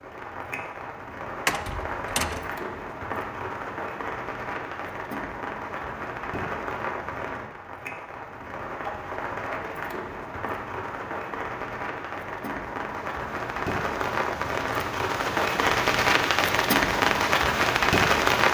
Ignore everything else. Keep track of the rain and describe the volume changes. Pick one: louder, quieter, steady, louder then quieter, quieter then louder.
louder.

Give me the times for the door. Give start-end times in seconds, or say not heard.
1.4-2.5.